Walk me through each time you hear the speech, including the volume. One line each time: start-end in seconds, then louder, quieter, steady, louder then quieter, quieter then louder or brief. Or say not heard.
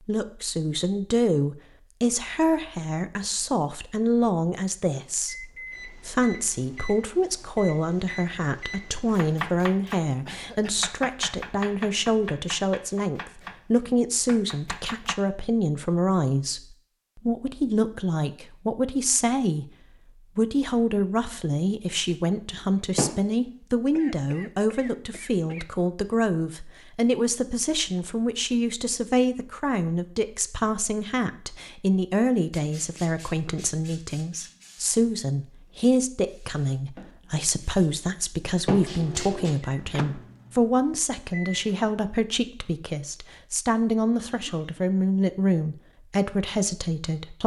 0.1-19.6 steady
20.4-47.4 steady.